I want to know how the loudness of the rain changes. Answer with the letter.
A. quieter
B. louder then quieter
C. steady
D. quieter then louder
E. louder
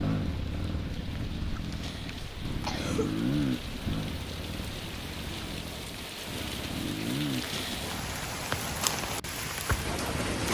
E.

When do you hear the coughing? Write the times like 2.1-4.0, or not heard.
1.6-3.1, 7.3-7.8.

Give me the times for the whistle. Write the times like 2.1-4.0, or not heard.
not heard.